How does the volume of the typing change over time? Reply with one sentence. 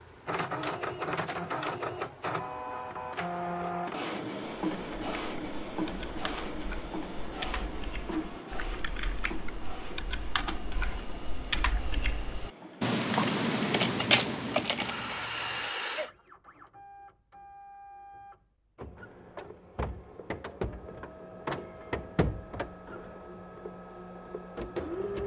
The volume of the typing goes up.